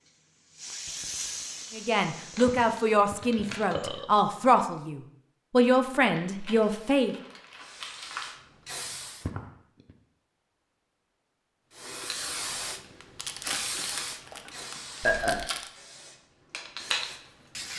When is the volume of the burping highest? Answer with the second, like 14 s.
15 s.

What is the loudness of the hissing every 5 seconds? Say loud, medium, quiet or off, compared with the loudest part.
loud, medium, loud, loud.